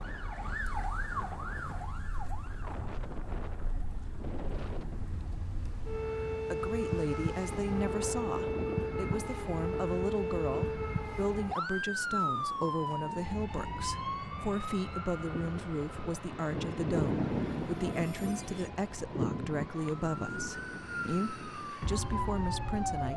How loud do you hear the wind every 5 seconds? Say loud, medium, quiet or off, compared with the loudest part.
medium, medium, quiet, loud, medium.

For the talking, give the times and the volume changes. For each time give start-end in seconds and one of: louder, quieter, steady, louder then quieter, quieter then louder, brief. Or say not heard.
6.5-23.1 steady.